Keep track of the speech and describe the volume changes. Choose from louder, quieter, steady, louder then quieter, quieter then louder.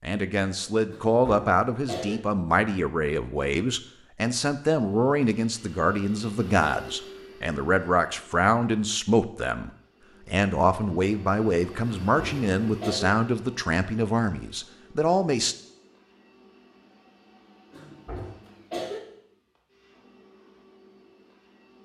steady.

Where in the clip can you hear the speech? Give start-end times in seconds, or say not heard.
0.0-15.6.